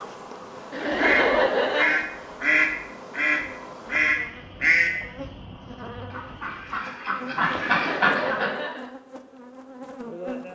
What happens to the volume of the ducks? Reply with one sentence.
The volume of the ducks goes down, then up.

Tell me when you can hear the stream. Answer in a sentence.
You can't hear the stream here.